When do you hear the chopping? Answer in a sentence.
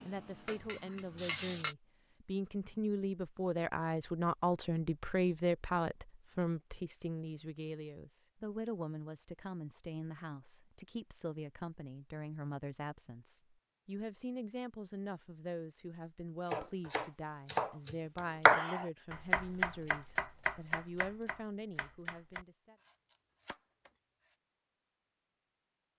You can hear the chopping from 16.4 to 24.4 s.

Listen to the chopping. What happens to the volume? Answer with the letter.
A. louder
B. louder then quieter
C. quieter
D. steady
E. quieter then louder
B.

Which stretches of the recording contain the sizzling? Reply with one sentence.
You can hear the sizzling from 0.0 to 1.8 s.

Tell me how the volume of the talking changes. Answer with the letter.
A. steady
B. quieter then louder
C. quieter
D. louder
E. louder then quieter
C.